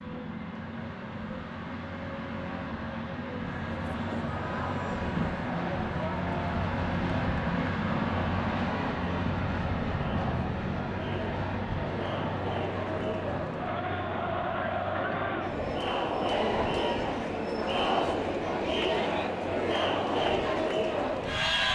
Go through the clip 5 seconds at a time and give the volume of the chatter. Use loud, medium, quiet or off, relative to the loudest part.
medium, medium, medium, loud, loud.